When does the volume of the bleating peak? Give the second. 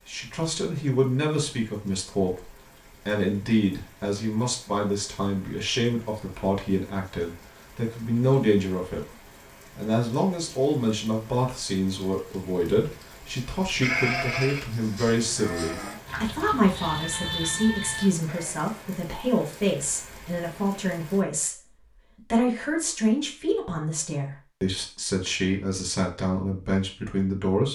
14 s.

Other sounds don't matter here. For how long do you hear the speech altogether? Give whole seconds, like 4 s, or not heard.
27 s.